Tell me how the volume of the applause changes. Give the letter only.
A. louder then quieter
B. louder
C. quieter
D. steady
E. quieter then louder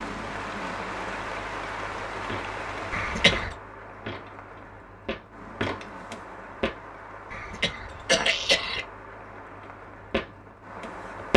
C.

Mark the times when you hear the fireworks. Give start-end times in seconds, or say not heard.
not heard.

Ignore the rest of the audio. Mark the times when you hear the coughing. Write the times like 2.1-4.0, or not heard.
2.9-3.5, 7.3-8.8.